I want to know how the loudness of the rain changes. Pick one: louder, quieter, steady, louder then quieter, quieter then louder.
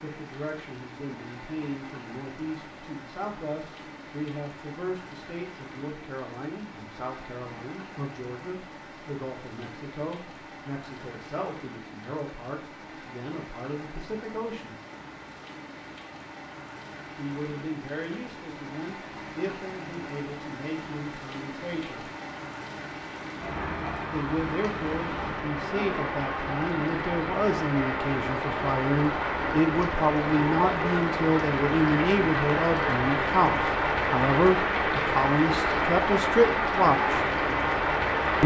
louder.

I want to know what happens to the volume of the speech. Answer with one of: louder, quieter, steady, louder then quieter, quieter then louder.
louder.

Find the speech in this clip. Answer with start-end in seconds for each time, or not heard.
0.0-14.8, 17.1-22.1, 24.1-37.2.